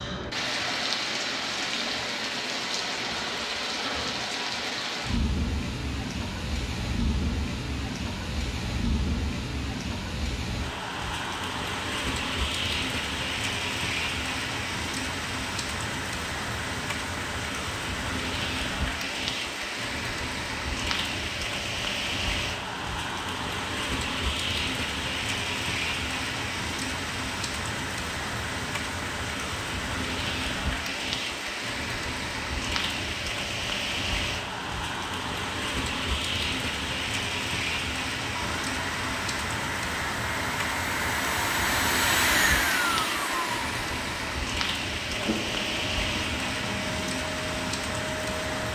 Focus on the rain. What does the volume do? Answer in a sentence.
The loudness of the rain stays about the same.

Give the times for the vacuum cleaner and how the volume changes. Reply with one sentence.
The vacuum cleaner can be heard from 38.3 to 48.7 s, getting louder then quieter.